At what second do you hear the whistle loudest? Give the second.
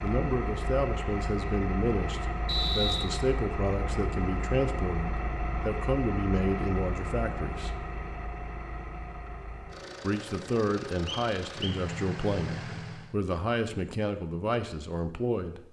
3 s.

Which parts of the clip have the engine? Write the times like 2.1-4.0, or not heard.
0.0-13.2.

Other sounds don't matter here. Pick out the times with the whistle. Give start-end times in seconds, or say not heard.
2.5-3.1, 11.1-11.8.